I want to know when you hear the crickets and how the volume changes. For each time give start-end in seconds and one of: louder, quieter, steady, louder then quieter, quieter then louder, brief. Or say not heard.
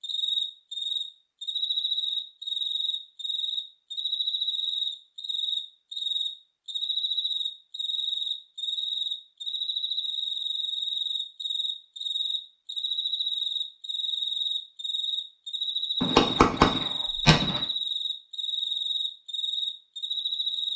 0.0-20.7 steady.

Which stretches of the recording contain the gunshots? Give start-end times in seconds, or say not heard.
16.0-17.6.